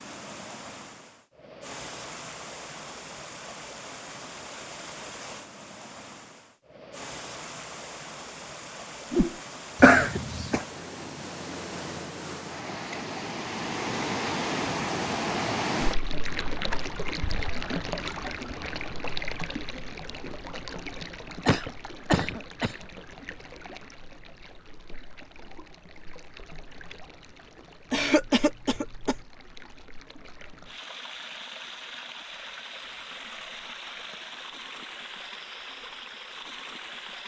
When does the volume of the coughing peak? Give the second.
10 s.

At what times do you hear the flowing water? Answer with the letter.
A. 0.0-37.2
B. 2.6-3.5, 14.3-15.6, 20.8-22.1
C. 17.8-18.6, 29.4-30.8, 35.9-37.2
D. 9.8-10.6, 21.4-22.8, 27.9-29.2
A.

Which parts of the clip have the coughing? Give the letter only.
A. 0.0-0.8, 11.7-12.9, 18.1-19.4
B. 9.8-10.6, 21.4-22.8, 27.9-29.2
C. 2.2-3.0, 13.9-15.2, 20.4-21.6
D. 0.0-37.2
B.